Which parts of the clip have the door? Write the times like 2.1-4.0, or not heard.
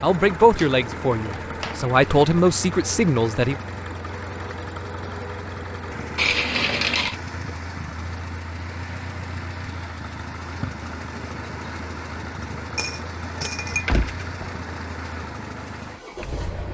13.8-14.5.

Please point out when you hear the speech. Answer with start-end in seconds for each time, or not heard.
0.0-3.5.